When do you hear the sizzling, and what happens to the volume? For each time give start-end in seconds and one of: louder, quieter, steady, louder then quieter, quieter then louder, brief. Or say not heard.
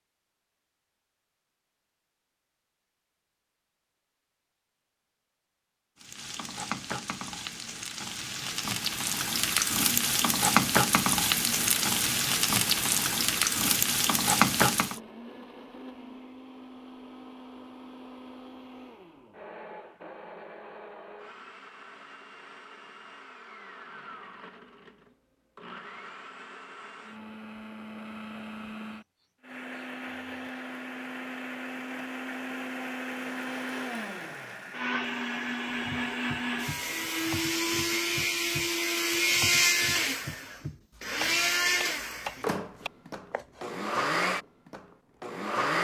6.0-15.0 louder.